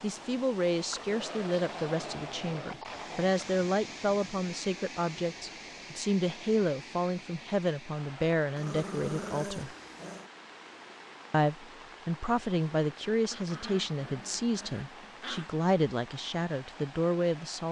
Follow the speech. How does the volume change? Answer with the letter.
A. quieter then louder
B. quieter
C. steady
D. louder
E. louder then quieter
C.